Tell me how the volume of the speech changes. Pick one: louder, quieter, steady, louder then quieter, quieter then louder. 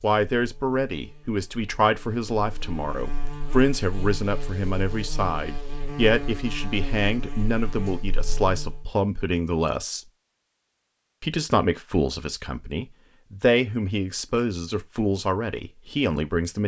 steady.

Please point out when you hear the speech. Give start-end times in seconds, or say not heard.
0.0-10.1, 11.2-16.6.